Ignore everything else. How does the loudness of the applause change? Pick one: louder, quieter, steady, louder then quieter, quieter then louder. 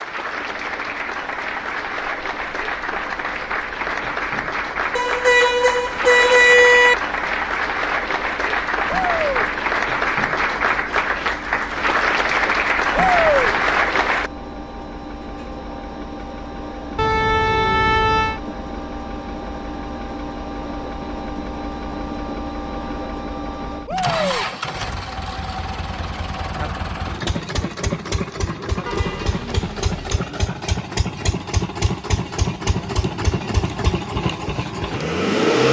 louder.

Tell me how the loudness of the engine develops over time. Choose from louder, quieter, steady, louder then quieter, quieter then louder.
louder.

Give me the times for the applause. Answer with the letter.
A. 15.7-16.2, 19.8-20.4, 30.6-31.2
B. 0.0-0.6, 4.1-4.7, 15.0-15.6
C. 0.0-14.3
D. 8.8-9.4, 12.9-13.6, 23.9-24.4
C.